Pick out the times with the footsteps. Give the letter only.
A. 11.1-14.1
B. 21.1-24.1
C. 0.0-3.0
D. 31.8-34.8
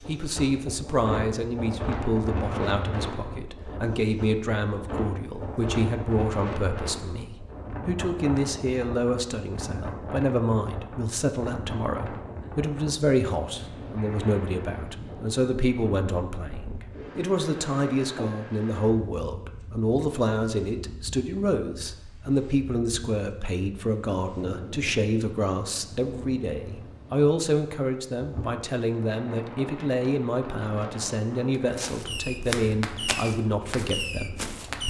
D.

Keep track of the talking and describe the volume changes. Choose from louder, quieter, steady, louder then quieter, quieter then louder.
steady.